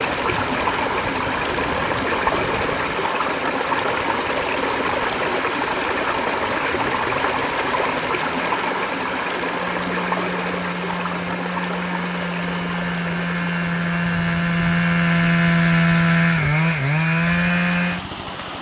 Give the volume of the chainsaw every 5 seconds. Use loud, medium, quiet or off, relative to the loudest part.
quiet, quiet, medium, loud.